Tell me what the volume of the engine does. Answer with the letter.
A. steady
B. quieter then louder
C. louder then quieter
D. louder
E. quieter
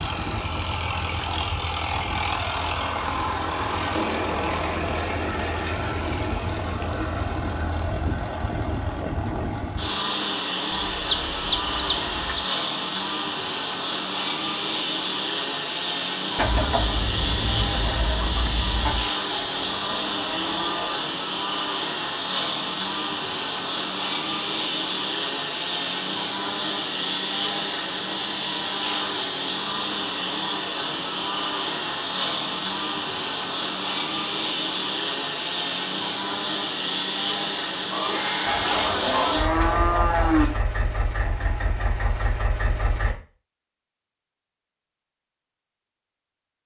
A.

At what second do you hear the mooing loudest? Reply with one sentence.
The loudest moment of the mooing is at 40 seconds.